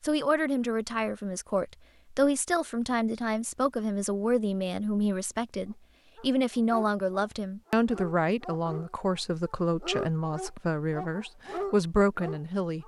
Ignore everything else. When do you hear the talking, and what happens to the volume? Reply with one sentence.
The talking can be heard from 0.0 to 12.8 s, at a steady volume.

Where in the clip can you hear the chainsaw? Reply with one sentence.
You can't hear the chainsaw here.